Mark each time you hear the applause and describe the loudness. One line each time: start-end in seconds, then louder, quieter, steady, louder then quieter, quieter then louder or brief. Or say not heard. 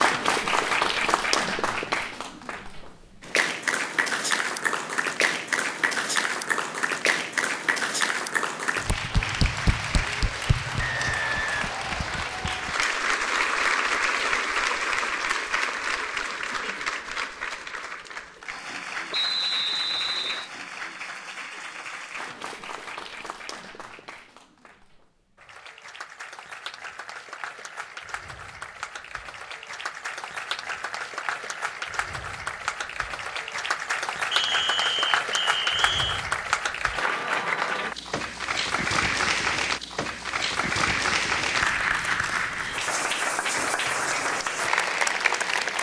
0.0-45.7 quieter then louder.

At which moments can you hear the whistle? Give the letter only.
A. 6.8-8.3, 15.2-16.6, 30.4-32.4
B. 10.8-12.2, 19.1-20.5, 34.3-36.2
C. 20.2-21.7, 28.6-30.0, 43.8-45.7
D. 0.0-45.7
B.